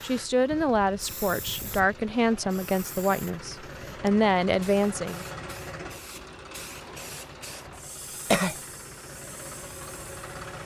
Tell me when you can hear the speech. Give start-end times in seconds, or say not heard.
0.0-5.2.